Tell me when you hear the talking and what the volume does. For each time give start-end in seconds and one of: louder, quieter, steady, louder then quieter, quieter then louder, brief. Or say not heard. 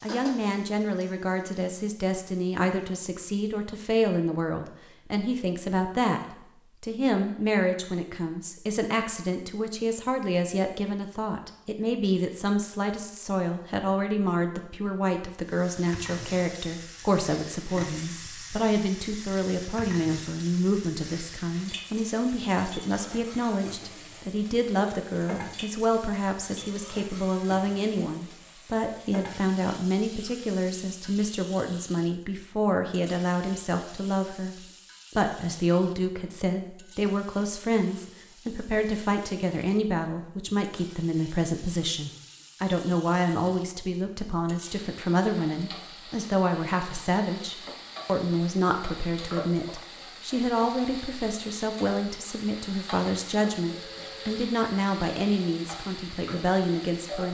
0.0-34.5 steady
35.1-57.2 steady.